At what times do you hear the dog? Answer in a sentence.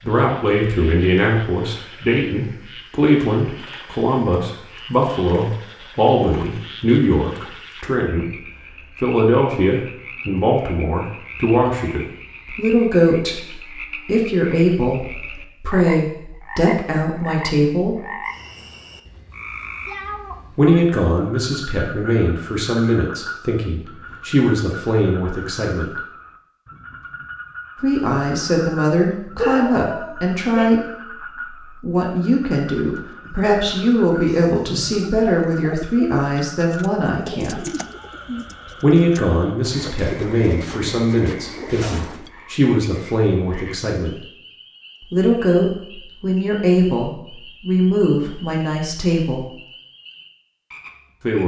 You can hear the dog from 29.4 to 30.7 s.